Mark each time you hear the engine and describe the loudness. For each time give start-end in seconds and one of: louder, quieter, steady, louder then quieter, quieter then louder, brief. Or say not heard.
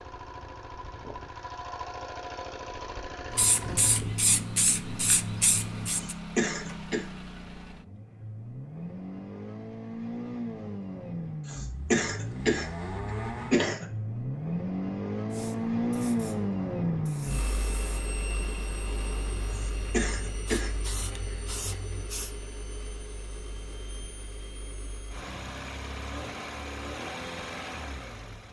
0.0-28.4 louder then quieter.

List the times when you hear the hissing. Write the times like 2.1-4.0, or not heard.
3.3-6.2, 15.3-22.3.